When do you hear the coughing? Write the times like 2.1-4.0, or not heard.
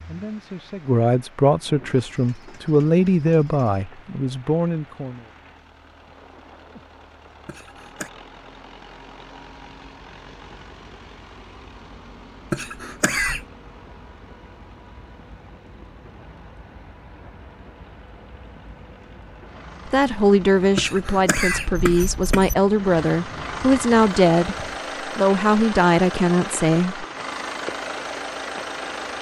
7.5-8.1, 12.5-13.4, 20.8-22.6.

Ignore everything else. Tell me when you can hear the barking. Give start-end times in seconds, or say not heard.
not heard.